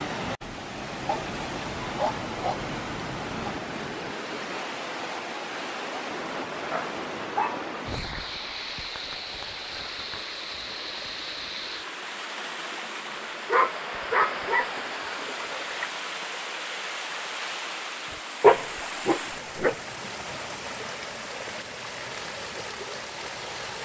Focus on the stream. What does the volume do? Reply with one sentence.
The loudness of the stream stays about the same.